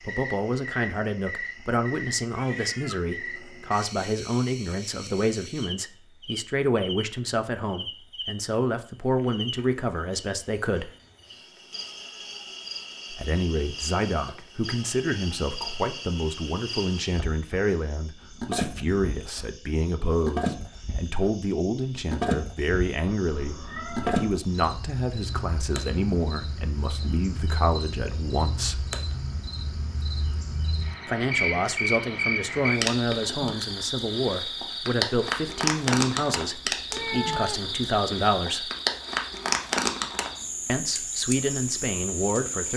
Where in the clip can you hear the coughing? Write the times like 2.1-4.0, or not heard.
not heard.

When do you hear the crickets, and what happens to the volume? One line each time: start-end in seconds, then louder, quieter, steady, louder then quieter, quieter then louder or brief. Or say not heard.
0.0-42.7 louder.